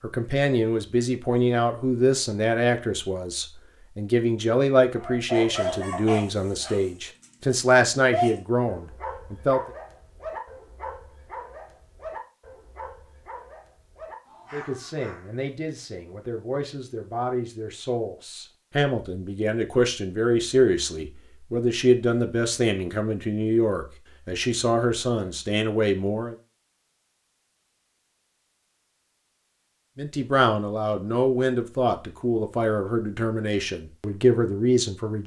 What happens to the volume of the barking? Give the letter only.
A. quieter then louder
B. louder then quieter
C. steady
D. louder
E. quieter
E.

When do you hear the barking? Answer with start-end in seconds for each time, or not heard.
5.0-15.4.